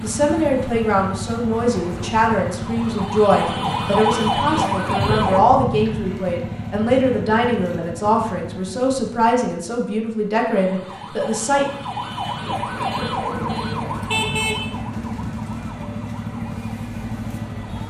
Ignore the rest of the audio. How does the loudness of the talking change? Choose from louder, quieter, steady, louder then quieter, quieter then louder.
steady.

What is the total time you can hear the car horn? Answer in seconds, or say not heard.
3 s.